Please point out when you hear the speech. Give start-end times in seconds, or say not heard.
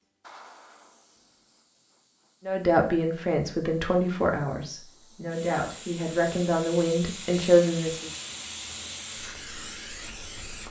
2.5-8.1.